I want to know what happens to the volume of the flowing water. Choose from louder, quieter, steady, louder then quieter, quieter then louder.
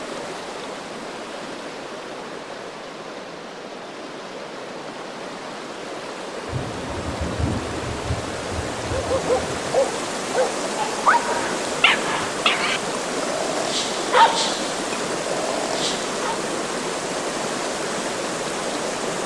louder.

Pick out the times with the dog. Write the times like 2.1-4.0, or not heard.
8.9-16.4.